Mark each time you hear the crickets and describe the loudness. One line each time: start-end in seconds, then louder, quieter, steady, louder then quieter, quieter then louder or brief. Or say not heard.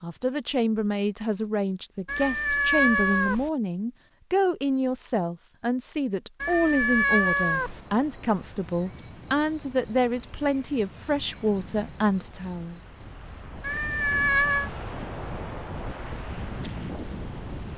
7.2-17.7 quieter.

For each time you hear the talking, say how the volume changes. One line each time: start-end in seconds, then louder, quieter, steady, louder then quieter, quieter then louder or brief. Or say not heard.
0.0-12.8 steady.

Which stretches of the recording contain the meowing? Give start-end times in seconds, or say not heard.
2.0-3.5, 6.4-7.8, 13.6-14.7.